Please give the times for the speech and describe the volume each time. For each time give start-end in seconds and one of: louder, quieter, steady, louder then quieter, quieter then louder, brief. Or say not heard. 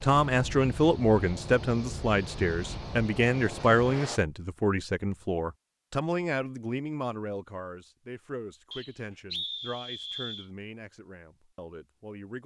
0.0-12.4 quieter.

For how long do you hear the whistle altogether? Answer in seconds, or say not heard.
2 s.